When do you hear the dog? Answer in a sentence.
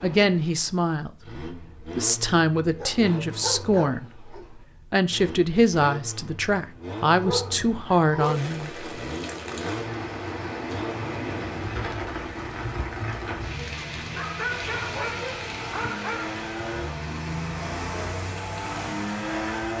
The dog can be heard from 2.8 to 4.5 s, from 7.2 to 8.4 s and from 14.1 to 17.0 s.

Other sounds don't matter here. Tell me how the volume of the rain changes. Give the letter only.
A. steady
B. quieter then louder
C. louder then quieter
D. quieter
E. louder
D.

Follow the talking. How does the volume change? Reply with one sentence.
The loudness of the talking stays about the same.